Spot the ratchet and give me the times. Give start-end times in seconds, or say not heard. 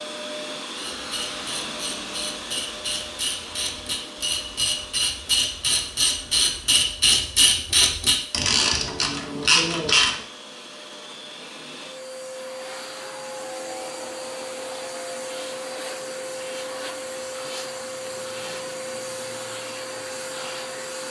0.8-10.2.